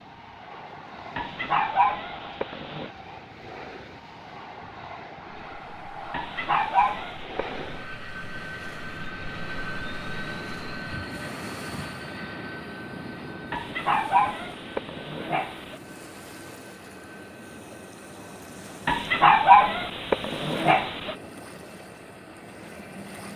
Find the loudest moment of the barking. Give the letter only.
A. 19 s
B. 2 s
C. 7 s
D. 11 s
A.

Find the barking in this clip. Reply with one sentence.
You can hear the barking from 1.1 to 2.9 s, from 6.1 to 7.8 s, from 13.5 to 15.8 s and from 18.9 to 21.1 s.